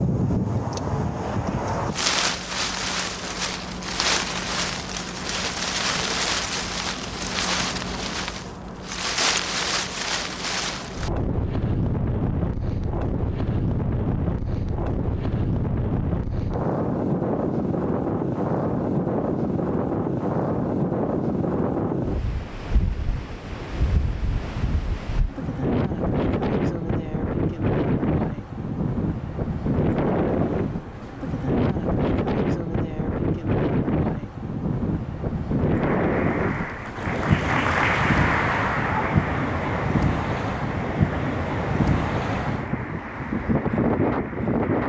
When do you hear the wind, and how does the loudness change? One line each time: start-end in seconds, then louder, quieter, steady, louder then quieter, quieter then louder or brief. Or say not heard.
0.0-44.8 steady.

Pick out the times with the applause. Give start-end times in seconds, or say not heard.
35.6-44.8.